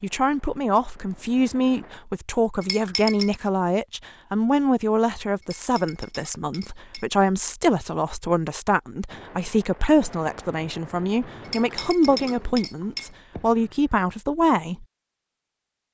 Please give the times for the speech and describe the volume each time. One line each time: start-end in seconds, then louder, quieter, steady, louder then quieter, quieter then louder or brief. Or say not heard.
0.0-14.8 steady.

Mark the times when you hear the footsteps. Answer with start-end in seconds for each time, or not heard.
not heard.